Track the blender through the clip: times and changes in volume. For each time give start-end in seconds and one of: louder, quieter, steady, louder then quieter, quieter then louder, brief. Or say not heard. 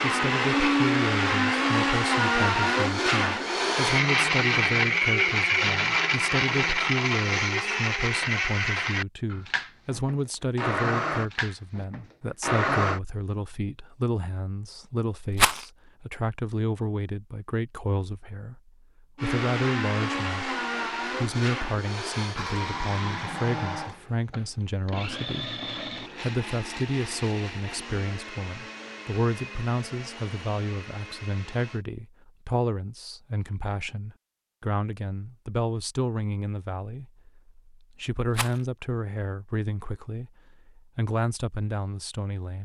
0.0-13.0 quieter
19.1-31.9 quieter.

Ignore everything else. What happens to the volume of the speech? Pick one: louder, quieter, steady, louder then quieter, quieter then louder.
steady.